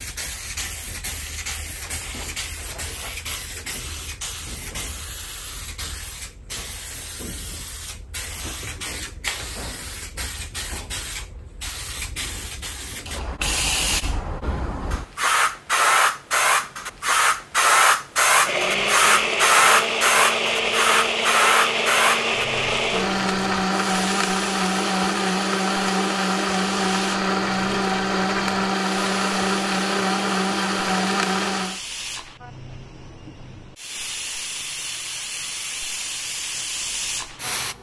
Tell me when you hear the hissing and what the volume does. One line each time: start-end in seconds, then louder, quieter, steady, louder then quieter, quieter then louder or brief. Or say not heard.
0.0-37.7 louder then quieter.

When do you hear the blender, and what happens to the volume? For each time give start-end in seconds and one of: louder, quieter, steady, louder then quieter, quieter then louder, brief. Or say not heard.
18.3-31.8 steady.